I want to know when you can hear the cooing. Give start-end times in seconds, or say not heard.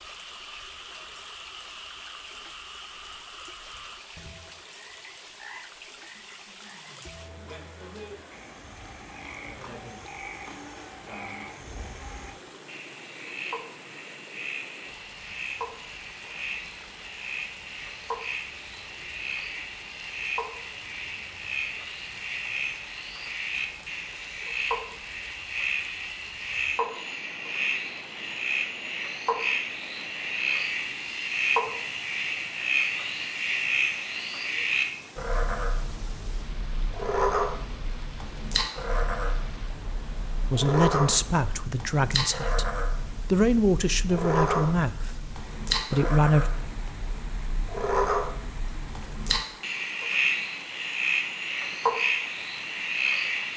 not heard.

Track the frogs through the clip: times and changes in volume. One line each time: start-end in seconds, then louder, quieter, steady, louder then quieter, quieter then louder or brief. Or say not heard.
0.0-53.5 louder.